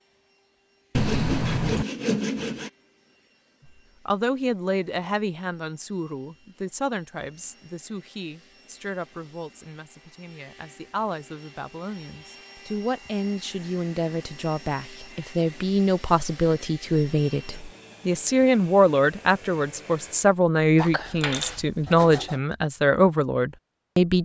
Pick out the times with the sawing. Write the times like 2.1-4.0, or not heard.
0.9-2.7, 20.8-22.4.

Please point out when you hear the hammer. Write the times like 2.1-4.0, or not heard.
not heard.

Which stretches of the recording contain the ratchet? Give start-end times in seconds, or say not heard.
not heard.